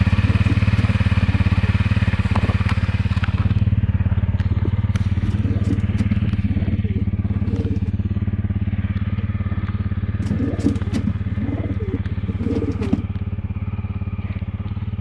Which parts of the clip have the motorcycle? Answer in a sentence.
You can hear the motorcycle from 0.0 to 14.9 s.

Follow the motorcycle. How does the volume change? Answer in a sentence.
The volume of the motorcycle goes down.